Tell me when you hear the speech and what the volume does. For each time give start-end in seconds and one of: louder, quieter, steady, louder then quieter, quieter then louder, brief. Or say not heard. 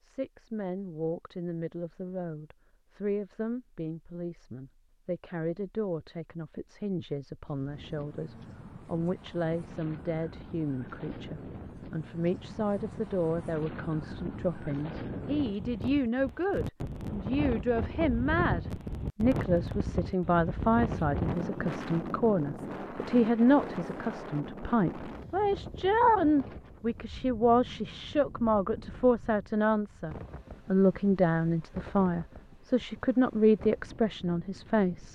0.0-35.0 louder.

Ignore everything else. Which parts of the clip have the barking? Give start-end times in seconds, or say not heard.
not heard.